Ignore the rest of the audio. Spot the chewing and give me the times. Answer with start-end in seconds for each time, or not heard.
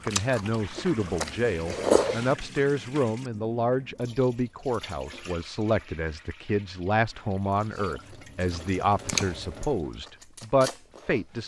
0.0-2.4, 7.5-11.4.